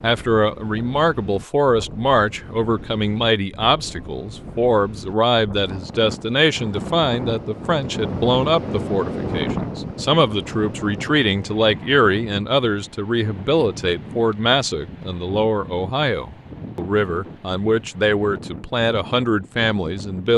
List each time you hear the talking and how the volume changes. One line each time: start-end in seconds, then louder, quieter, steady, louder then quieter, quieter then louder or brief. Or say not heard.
0.0-20.3 steady.